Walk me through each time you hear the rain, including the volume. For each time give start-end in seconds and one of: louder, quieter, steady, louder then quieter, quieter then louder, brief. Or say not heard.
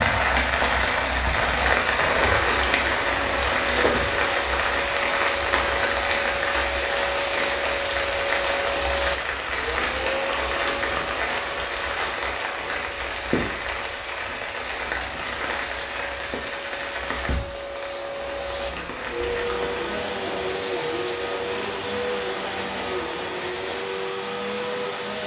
0.0-25.2 quieter.